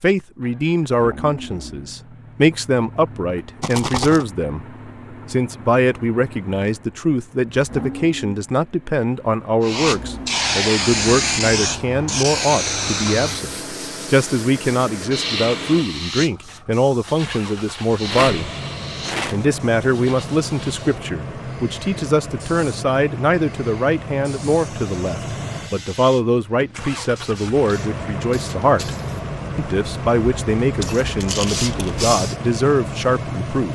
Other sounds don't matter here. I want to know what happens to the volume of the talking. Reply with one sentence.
The volume of the talking stays about the same.